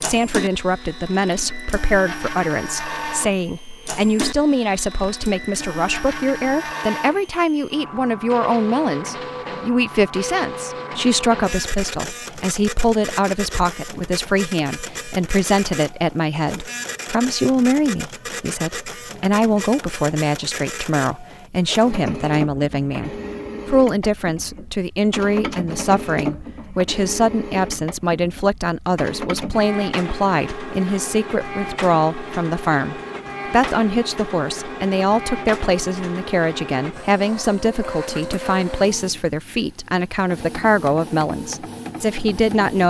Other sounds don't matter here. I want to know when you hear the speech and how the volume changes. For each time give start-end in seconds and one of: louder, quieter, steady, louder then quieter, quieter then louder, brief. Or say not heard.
0.0-42.8 steady.